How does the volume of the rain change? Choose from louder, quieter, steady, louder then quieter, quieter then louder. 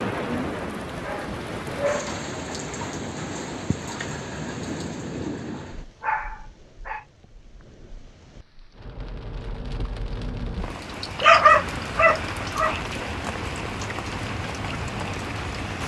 quieter then louder.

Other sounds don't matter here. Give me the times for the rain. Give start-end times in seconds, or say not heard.
0.0-15.8.